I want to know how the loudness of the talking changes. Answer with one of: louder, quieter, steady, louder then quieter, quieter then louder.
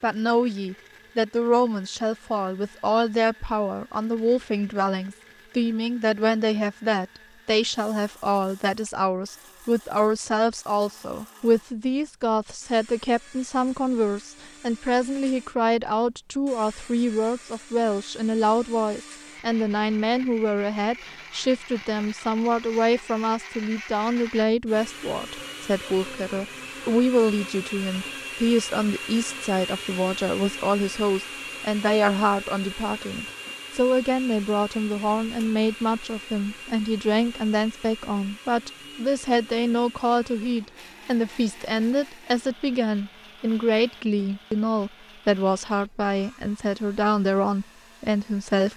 steady.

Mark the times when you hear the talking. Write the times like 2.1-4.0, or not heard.
0.0-48.7.